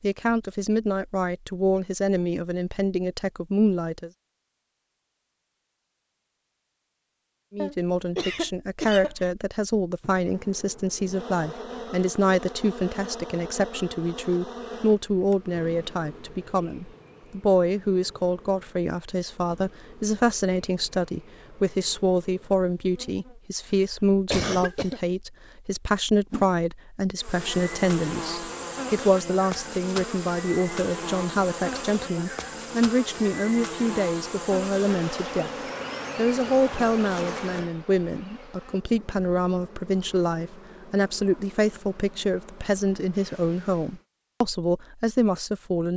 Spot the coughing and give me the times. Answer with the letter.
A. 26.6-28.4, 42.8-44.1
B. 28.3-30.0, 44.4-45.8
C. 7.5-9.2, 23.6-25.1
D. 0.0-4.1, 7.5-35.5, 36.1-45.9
C.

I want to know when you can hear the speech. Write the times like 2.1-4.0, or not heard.
0.0-4.1, 7.5-35.5, 36.1-45.9.